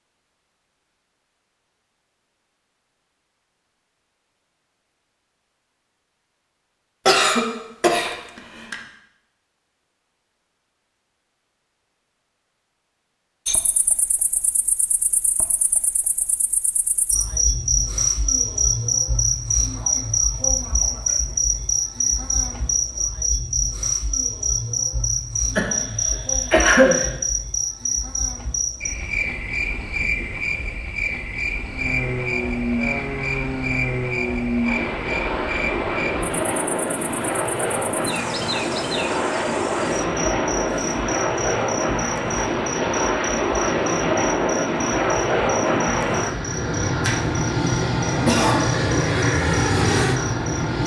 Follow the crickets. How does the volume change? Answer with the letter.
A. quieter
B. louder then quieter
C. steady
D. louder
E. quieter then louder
A.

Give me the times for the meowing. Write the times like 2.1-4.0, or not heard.
not heard.